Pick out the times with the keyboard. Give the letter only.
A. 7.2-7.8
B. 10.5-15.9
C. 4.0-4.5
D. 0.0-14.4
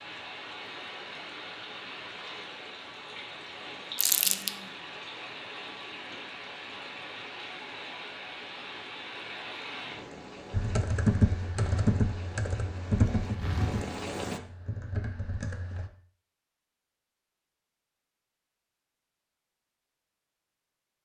B.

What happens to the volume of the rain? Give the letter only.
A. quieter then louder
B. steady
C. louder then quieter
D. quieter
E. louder
B.